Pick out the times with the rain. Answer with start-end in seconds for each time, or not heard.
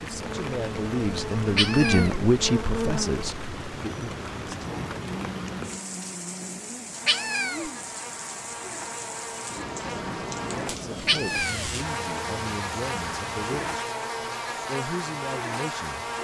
0.0-13.8.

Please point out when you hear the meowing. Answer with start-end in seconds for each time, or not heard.
1.6-2.2, 7.0-7.7, 11.1-11.7.